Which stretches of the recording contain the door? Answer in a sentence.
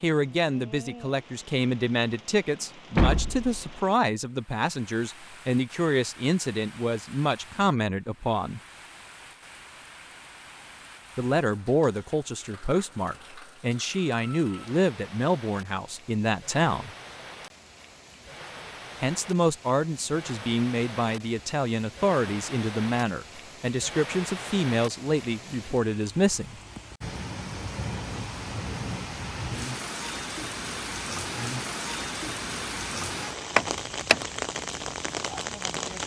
You can hear the door from 3.0 to 3.6 s and from 33.5 to 34.1 s.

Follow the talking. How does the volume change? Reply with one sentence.
The loudness of the talking stays about the same.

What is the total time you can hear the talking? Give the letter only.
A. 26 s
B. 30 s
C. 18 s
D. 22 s
D.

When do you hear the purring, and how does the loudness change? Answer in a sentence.
You can't hear the purring here.